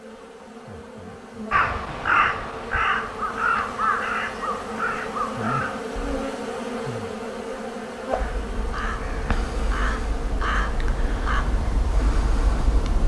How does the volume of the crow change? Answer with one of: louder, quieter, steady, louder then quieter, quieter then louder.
quieter.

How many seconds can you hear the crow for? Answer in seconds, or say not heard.
10 s.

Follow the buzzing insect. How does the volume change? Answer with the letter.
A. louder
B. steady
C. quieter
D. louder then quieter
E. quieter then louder
D.